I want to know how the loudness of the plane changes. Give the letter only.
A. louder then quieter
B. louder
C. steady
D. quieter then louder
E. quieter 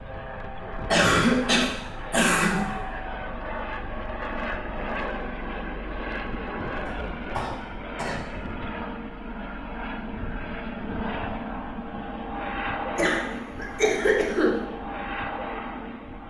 C.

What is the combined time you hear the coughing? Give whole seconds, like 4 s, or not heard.
5 s.